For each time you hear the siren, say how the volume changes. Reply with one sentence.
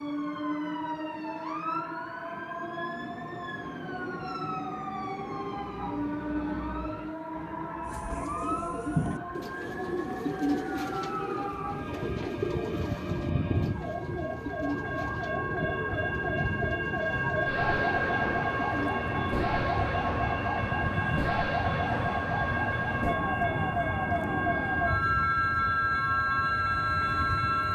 You can hear the siren from 0.0 to 27.7 s, getting louder.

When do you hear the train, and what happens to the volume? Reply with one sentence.
The train can be heard from 0.0 to 27.7 s, getting louder.